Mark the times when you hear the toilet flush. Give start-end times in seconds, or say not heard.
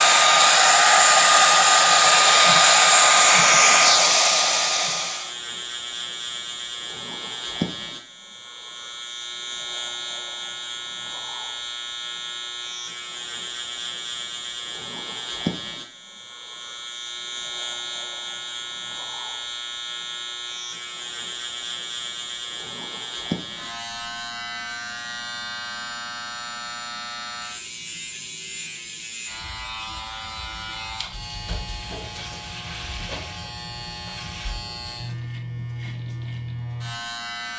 not heard.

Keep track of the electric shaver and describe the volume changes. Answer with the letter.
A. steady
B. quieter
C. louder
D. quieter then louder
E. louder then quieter
A.